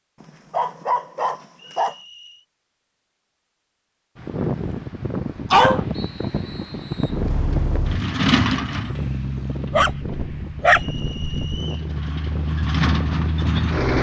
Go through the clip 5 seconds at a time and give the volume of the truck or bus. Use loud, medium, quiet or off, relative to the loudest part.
off, loud, loud.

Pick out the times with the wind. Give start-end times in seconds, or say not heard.
4.2-13.7.